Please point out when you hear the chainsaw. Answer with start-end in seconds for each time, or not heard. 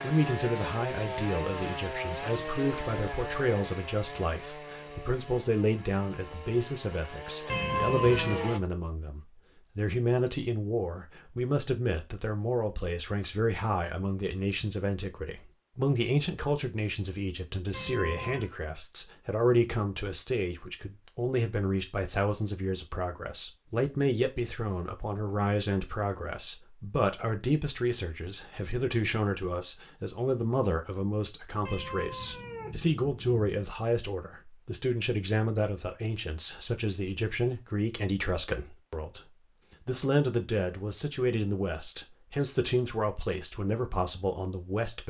0.0-8.6.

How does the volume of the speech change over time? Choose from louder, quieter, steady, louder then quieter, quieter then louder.
steady.